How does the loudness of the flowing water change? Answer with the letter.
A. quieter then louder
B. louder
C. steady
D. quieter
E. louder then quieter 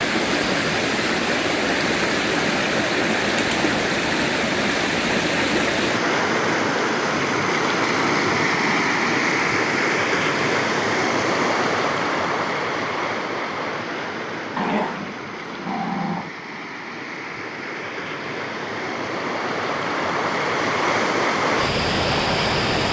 A.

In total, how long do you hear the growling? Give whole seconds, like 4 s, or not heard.
2 s.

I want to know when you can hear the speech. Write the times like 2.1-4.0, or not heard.
not heard.